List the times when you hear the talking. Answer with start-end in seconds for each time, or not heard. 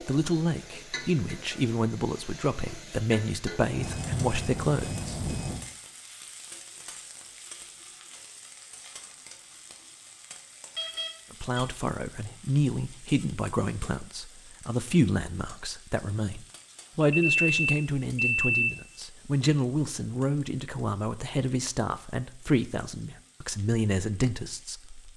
0.1-5.2, 11.3-25.1.